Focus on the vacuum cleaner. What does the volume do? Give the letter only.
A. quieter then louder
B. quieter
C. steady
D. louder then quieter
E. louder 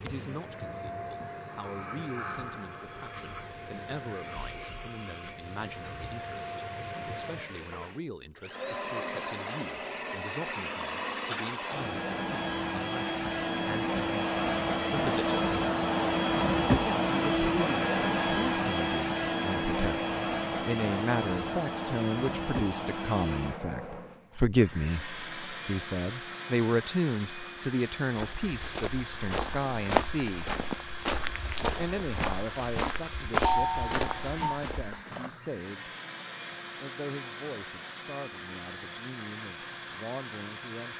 D.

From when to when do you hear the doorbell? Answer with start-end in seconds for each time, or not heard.
33.5-34.6.